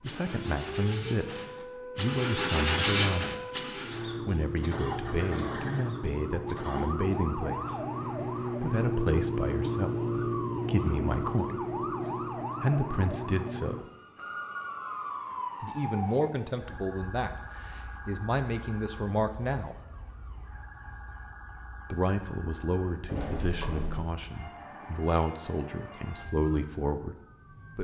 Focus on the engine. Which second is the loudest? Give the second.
3 s.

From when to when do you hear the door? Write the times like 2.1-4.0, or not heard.
23.1-24.1.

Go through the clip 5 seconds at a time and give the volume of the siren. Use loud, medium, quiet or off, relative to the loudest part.
medium, loud, loud, medium, quiet, quiet.